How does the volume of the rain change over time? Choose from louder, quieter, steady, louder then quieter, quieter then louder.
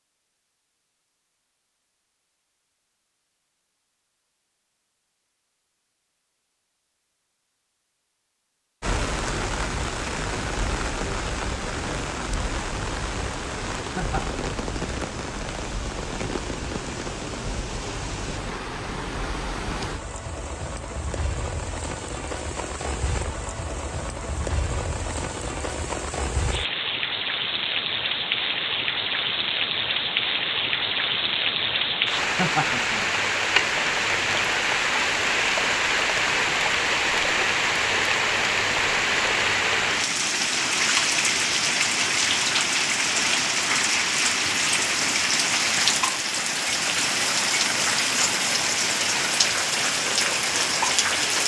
louder.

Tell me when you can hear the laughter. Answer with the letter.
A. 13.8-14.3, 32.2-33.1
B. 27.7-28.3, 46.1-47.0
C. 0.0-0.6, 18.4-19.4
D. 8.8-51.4
A.